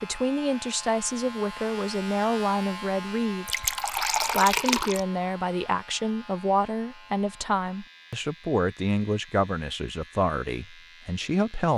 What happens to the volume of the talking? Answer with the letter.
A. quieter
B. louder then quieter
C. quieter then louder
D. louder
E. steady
E.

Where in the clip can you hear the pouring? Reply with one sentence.
You can hear the pouring from 3.5 to 5.0 s.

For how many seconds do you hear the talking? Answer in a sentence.
You can hear the talking for 12 seconds altogether.